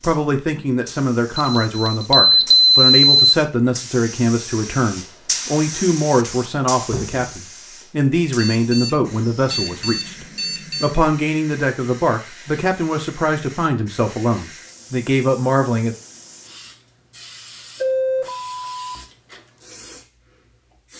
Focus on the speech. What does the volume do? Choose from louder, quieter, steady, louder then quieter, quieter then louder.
steady.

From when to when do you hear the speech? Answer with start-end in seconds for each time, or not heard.
0.0-15.9.